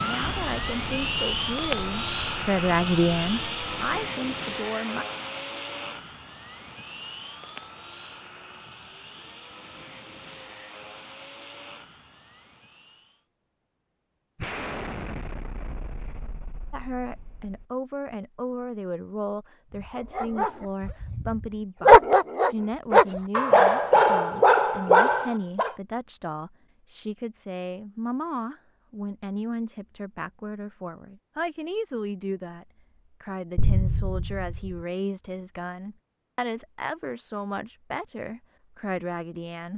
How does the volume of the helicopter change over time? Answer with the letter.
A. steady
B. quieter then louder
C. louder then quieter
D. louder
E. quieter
E.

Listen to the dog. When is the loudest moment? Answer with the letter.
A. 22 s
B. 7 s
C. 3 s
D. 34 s
A.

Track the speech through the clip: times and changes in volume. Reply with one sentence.
The speech can be heard from 0.0 to 5.0 s, getting louder then quieter; and from 16.7 to 39.7 s, at a steady volume.